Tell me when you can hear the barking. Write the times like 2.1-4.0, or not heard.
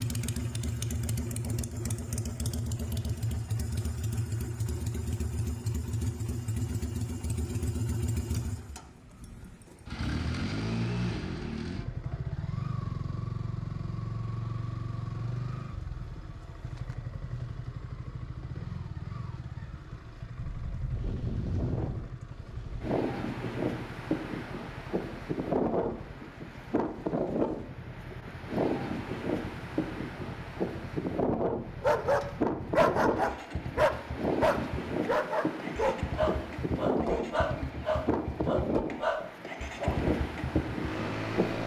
31.8-40.0.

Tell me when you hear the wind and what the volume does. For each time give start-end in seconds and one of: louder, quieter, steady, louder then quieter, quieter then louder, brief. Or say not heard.
20.4-41.6 steady.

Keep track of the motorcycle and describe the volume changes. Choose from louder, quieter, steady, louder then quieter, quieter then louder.
quieter then louder.